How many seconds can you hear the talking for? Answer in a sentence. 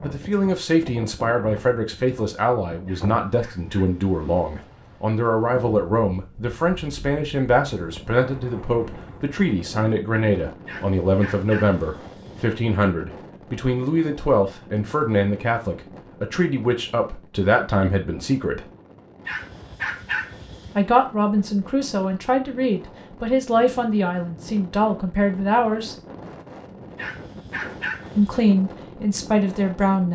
You can hear the talking for 26 seconds altogether.